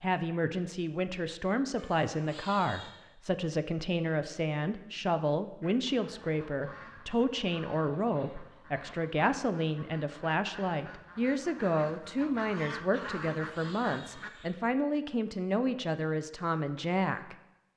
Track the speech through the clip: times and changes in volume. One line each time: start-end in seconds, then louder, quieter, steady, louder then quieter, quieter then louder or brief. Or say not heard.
0.0-17.7 steady.